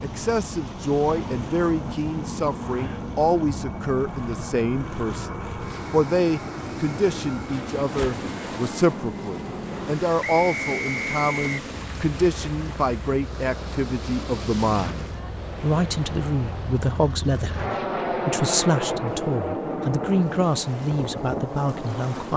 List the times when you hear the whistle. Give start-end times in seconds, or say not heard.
10.2-11.6.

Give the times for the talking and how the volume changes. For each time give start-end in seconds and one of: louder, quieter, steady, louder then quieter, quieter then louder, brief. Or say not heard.
0.0-22.3 steady.